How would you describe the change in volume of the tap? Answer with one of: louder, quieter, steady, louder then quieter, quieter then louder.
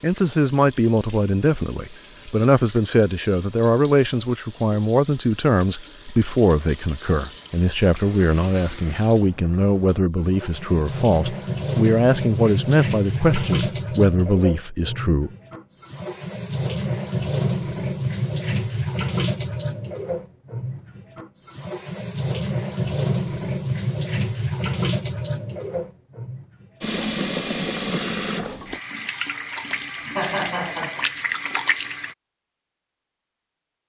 louder.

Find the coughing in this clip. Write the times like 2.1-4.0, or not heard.
29.9-31.1.